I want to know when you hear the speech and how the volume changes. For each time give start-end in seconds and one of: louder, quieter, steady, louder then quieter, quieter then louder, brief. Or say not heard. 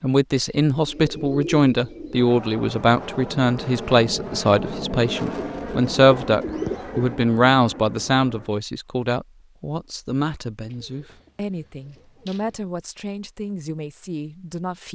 0.0-14.9 quieter.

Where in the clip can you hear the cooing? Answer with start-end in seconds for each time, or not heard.
0.8-2.2, 5.3-7.2, 10.7-12.6.